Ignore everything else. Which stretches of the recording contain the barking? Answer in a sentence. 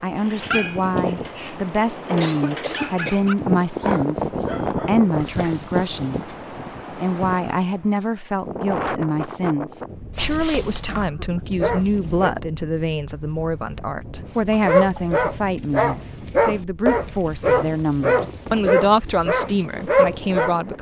You can hear the barking from 0.1 to 6.4 s, from 10.2 to 12.3 s and from 14.2 to 20.6 s.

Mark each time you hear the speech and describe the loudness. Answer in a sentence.
The speech can be heard from 0.0 to 20.7 s, at a steady volume.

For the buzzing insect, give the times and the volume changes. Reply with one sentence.
You can't hear the buzzing insect here.